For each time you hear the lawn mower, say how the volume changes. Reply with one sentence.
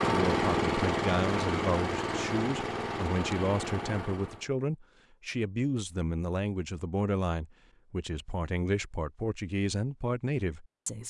You can hear the lawn mower from 0.0 to 4.5 s, getting quieter.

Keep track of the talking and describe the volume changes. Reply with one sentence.
The volume of the talking stays about the same.